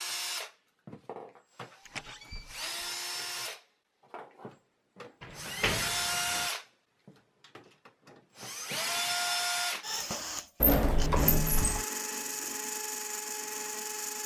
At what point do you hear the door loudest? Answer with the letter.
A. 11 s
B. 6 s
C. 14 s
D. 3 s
A.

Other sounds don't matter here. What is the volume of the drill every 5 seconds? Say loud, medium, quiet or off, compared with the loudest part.
medium, loud, loud.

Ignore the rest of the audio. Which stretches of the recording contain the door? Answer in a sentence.
You can hear the door from 1.9 to 2.8 s, from 5.2 to 6.5 s and from 10.6 to 11.8 s.